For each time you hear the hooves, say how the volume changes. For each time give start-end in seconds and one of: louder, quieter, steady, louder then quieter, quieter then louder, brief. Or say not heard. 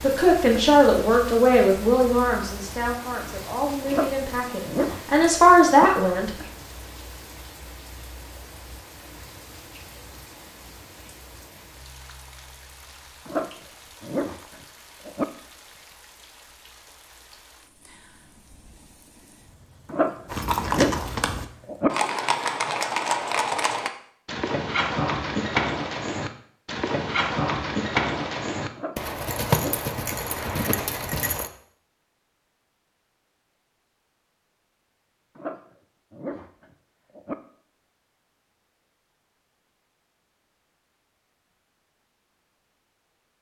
20.2-31.5 steady.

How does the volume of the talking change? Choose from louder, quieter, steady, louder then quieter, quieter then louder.
quieter then louder.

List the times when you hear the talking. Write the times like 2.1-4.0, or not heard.
0.0-6.3.